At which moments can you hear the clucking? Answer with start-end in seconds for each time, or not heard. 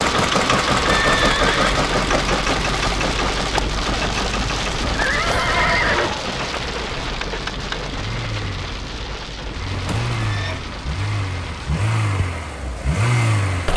not heard.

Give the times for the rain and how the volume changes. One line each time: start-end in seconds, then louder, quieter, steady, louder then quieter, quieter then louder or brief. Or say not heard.
0.0-13.7 quieter.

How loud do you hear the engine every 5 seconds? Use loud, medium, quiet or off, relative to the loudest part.
loud, medium, loud.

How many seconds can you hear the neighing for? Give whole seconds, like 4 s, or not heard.
3 s.